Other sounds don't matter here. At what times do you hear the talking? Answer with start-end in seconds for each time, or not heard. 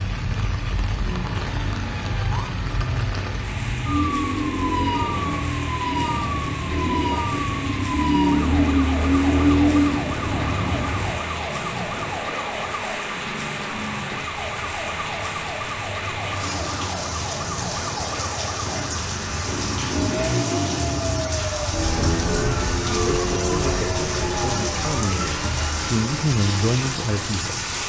22.1-27.6.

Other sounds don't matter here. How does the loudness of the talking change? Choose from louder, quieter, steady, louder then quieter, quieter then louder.
louder.